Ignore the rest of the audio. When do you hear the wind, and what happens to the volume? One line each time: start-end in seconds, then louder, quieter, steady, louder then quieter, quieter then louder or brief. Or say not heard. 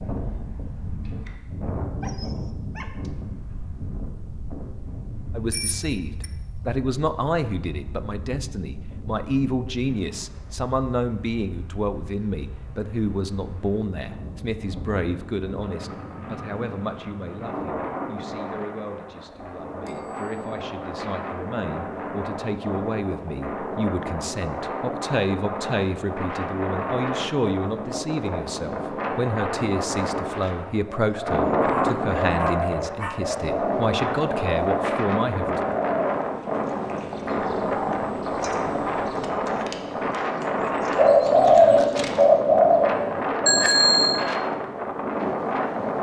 0.0-45.9 louder.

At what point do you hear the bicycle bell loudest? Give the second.
44 s.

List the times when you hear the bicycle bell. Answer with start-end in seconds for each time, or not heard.
5.5-6.3, 19.9-20.3, 43.5-44.2.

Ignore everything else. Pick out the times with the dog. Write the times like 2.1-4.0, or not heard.
2.0-3.1, 31.6-33.2.